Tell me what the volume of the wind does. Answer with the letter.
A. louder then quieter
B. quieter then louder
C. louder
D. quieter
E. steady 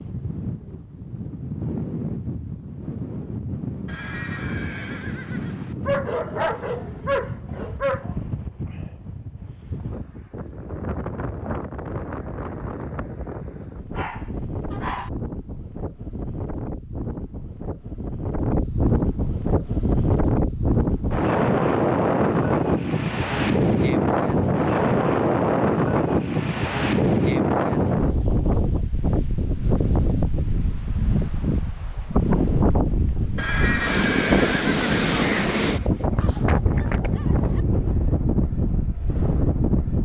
C.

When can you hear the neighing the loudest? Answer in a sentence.
The volume of the neighing peaks at 34 seconds.